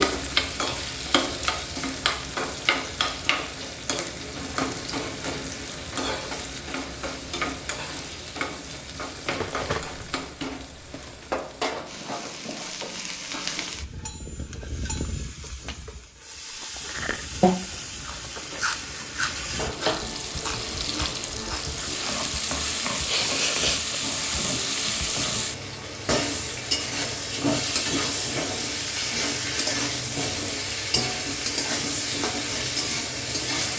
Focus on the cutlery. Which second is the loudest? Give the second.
10 s.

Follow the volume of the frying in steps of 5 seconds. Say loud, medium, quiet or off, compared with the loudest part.
loud, medium, medium, medium, loud, loud, loud.